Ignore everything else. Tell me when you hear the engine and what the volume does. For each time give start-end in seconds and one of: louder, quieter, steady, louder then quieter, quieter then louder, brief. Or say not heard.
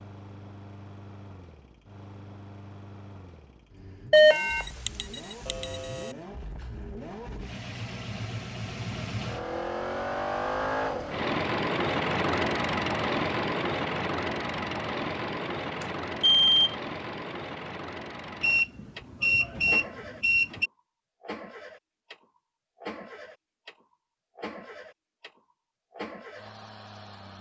0.0-27.3 louder then quieter.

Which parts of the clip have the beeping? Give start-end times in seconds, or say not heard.
4.1-6.1, 15.8-16.8, 18.4-20.7.